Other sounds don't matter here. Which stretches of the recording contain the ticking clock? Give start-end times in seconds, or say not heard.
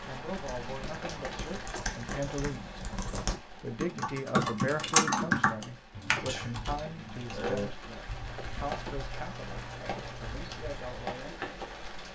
not heard.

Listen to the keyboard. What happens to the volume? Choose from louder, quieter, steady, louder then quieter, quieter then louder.
louder then quieter.